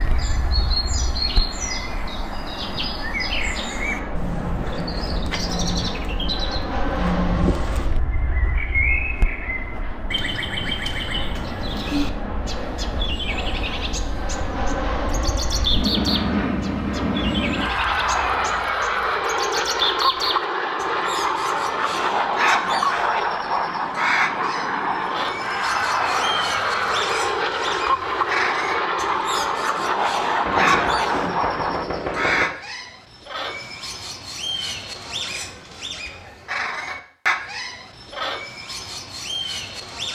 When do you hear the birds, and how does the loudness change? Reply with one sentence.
You can hear the birds from 0.0 to 40.0 s, at a steady volume.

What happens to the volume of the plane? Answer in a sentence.
The loudness of the plane goes up.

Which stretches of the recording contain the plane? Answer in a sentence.
The plane can be heard from 0.0 to 31.9 s.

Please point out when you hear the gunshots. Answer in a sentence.
The gunshots can be heard from 30.4 to 32.5 s.